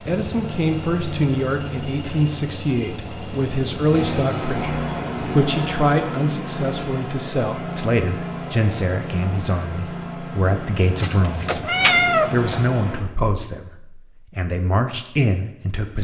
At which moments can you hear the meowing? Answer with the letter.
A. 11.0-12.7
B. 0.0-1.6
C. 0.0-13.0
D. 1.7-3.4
A.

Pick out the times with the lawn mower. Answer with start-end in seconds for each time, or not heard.
0.0-13.0.